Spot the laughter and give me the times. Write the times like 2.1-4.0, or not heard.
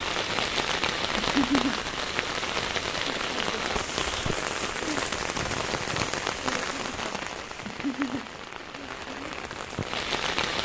1.1-1.8, 7.7-8.3.